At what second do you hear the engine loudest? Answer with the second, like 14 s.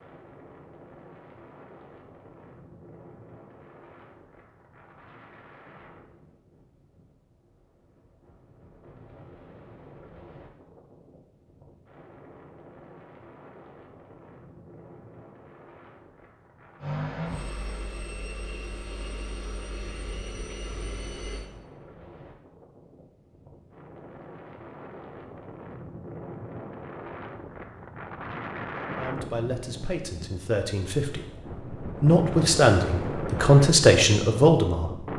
17 s.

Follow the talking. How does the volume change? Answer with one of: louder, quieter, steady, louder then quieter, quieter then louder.
louder.